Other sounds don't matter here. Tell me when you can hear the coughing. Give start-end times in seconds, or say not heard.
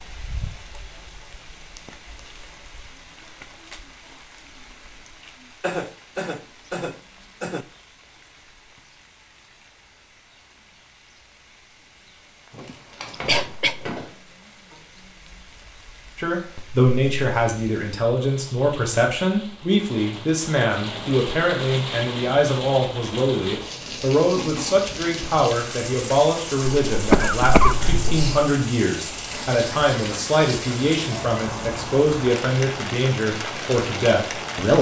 5.6-7.7, 12.6-13.8, 26.9-28.3.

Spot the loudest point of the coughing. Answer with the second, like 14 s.
27 s.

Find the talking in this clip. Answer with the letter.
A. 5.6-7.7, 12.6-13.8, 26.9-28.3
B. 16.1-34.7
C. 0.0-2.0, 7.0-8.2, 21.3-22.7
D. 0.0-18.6
B.